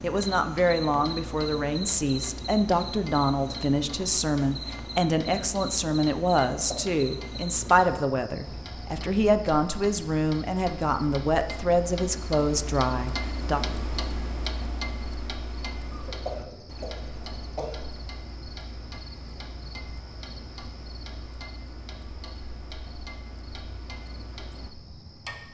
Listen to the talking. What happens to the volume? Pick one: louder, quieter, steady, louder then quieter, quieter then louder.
steady.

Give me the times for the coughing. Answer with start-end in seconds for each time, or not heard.
6.5-7.0, 15.9-17.9.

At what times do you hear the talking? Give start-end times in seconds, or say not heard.
0.0-13.6.